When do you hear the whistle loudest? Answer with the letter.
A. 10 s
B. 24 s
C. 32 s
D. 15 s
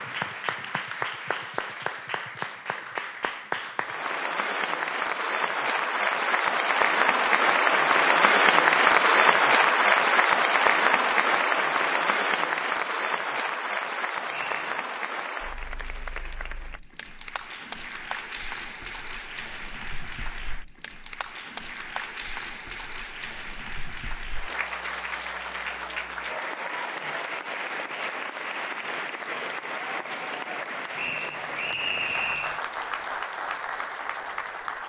C.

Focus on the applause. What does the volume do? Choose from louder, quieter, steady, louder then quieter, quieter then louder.
louder then quieter.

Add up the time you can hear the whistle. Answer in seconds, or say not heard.
2 s.